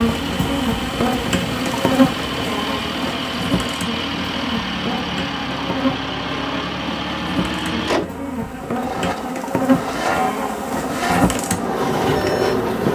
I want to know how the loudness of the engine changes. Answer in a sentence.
The loudness of the engine stays about the same.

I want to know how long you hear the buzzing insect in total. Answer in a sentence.
You can hear the buzzing insect for 13 seconds altogether.